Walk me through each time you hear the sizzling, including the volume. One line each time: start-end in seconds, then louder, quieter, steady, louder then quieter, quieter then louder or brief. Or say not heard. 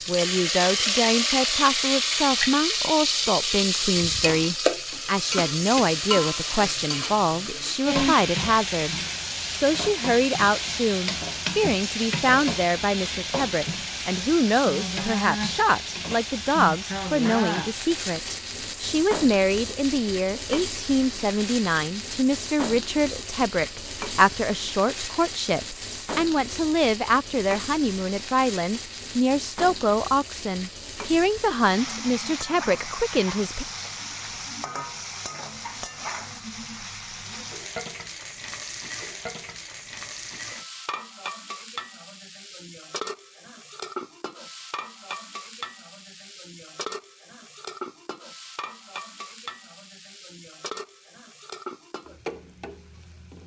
0.0-53.4 quieter.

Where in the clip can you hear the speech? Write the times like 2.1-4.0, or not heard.
0.1-33.6.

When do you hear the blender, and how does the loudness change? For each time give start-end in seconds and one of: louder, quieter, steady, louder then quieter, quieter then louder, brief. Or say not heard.
not heard.